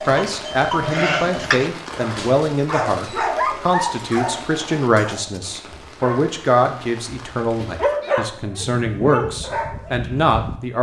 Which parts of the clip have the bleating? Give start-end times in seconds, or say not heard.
0.0-1.7, 8.0-10.6.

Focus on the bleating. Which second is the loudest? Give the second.
1 s.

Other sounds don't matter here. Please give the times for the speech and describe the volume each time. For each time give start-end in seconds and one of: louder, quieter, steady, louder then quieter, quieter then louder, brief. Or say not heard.
0.1-10.7 steady.